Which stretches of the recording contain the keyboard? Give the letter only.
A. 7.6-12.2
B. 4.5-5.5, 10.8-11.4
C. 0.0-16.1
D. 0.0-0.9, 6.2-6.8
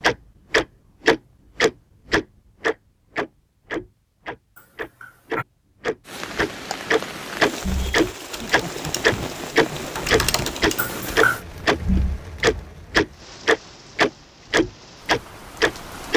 A.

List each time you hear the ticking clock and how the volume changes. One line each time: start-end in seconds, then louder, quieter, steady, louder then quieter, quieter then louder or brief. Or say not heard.
0.0-16.1 quieter then louder.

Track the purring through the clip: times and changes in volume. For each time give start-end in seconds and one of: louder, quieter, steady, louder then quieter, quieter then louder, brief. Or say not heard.
not heard.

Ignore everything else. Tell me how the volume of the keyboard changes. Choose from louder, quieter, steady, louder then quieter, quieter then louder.
louder then quieter.